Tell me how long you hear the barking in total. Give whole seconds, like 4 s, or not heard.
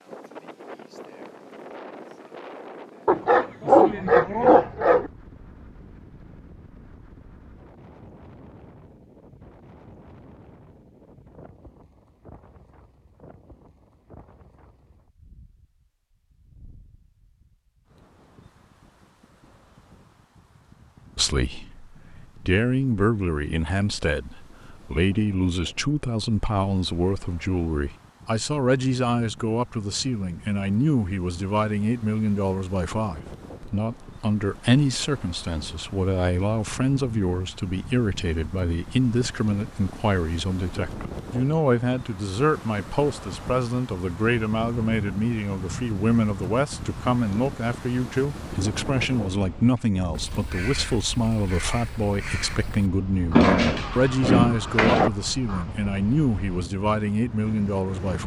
4 s.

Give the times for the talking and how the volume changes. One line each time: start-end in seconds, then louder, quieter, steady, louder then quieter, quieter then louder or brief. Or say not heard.
21.1-58.2 steady.